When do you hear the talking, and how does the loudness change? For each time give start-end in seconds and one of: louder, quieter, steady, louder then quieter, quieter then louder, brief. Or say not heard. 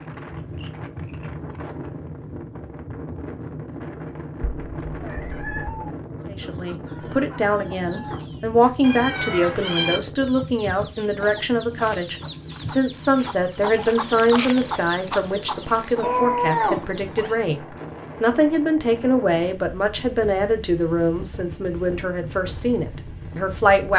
6.2-23.9 steady.